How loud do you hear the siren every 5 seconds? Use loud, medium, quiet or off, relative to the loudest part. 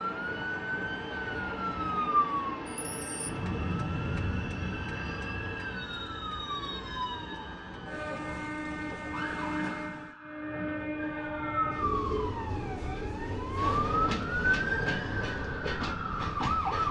loud, medium, loud, loud.